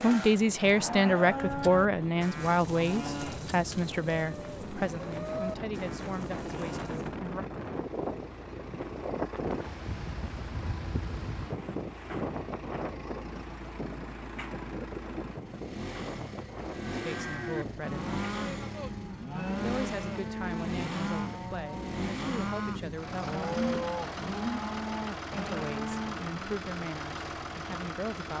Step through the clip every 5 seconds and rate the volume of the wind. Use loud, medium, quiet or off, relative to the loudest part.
medium, loud, loud, medium, off, off.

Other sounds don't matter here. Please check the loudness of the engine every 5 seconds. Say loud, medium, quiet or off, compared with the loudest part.
medium, medium, medium, loud, loud, loud.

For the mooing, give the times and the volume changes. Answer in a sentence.
The mooing can be heard from 0.0 to 7.2 s, getting quieter; and from 16.9 to 26.4 s, at a steady volume.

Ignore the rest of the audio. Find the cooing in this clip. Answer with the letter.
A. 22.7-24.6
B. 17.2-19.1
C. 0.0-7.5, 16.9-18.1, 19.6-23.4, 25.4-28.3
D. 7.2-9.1
A.